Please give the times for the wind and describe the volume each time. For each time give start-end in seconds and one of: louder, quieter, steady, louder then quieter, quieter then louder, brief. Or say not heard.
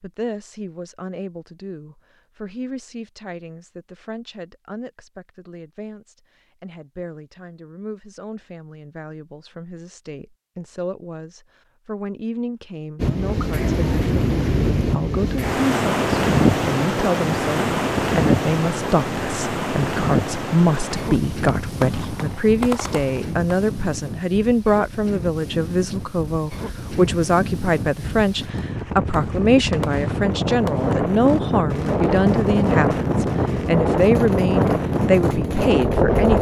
13.0-36.3 quieter then louder.